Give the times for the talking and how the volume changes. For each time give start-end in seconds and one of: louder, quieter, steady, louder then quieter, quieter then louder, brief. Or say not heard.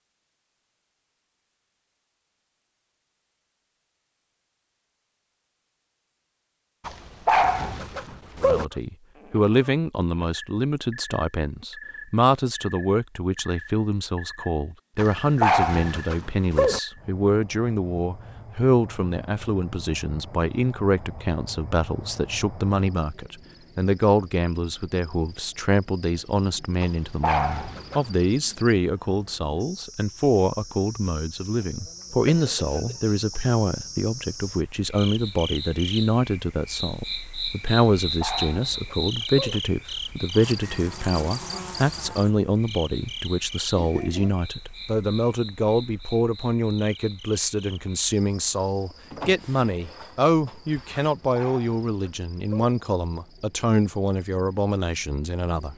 8.3-55.7 steady.